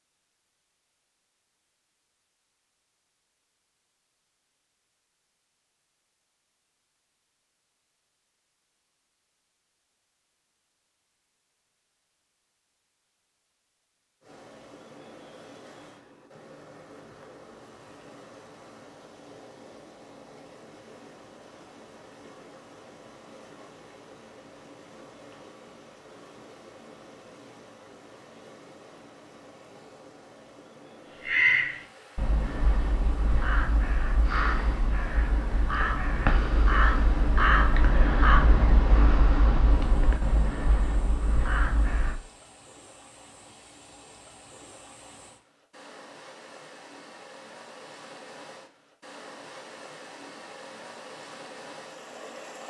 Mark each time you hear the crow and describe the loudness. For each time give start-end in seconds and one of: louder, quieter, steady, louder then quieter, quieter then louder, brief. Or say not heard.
31.2-42.2 louder then quieter.